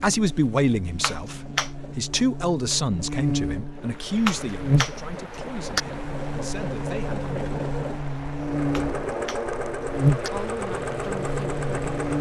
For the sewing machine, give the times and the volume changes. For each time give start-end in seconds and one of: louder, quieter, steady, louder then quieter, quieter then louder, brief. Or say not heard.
0.1-12.1 louder.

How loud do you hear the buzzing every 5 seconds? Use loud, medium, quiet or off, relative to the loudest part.
medium, medium, loud.